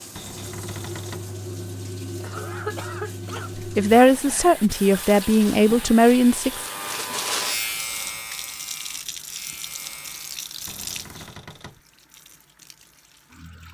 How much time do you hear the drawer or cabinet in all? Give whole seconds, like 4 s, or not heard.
2 s.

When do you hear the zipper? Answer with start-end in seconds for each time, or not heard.
not heard.